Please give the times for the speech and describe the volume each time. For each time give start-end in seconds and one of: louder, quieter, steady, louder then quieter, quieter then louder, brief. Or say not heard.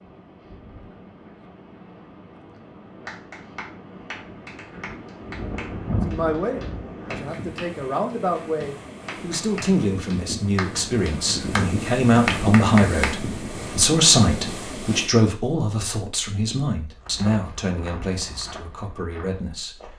6.0-19.9 louder then quieter.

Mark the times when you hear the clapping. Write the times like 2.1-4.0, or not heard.
3.0-13.2.